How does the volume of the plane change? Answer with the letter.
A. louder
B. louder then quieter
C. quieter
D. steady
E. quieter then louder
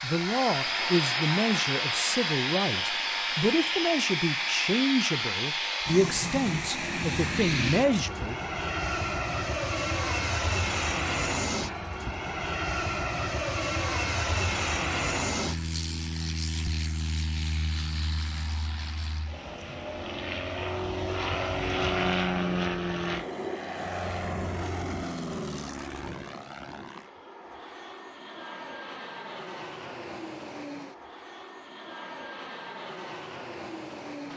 C.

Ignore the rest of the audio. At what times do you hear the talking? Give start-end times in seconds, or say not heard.
0.0-8.4.